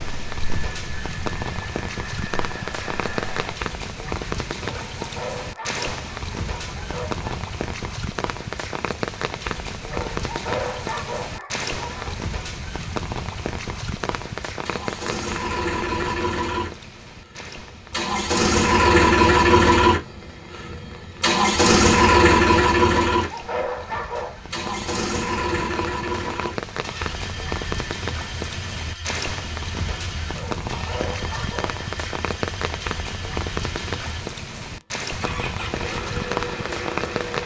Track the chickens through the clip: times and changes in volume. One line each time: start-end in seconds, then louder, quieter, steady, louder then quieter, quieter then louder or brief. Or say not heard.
not heard.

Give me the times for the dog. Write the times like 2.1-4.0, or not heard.
4.6-7.2, 9.9-12.3, 23.1-24.4, 30.3-31.8.